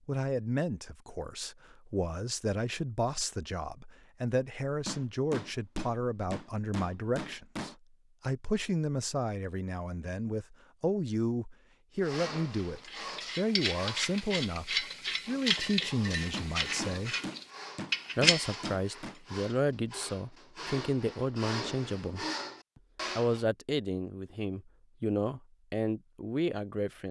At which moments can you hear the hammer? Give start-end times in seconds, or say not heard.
4.8-7.8, 16.3-19.1.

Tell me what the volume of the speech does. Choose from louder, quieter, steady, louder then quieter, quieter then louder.
steady.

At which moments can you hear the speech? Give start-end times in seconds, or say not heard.
0.1-17.1, 18.1-22.2, 23.1-27.0.